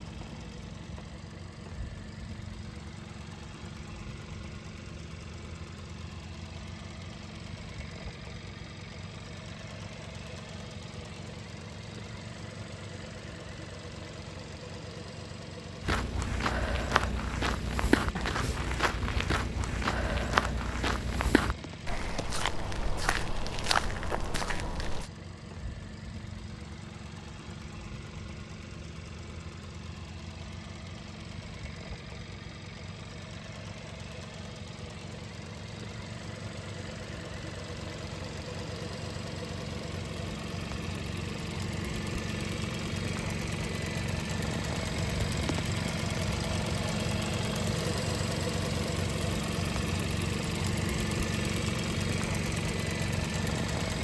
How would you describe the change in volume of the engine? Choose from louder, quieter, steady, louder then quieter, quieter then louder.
louder.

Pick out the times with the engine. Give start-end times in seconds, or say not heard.
0.0-53.9.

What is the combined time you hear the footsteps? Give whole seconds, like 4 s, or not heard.
9 s.